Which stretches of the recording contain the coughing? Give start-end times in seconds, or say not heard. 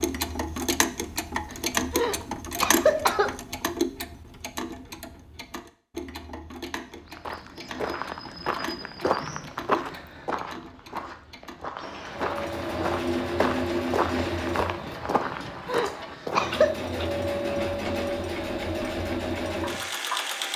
1.9-3.4, 15.7-16.8.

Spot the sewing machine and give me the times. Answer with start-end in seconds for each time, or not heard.
12.1-20.5.